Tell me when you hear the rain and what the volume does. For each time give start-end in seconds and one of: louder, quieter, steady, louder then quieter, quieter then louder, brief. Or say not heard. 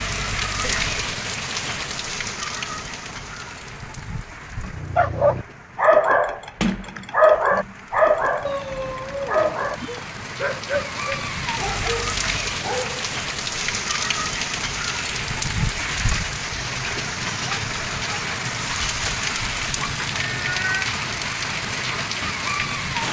0.0-23.0 quieter then louder.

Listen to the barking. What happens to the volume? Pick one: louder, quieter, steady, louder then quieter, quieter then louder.
quieter.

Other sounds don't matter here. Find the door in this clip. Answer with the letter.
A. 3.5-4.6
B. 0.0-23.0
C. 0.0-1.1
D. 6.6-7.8
D.